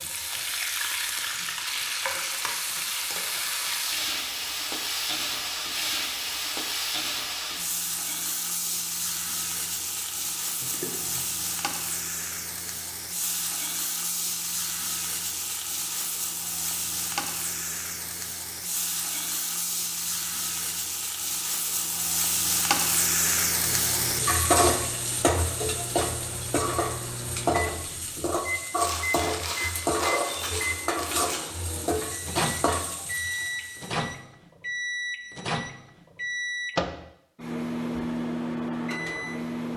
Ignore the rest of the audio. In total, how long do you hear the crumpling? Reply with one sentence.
You can hear the crumpling for 3 seconds altogether.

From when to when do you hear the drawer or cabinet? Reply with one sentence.
The drawer or cabinet can't be heard in this clip.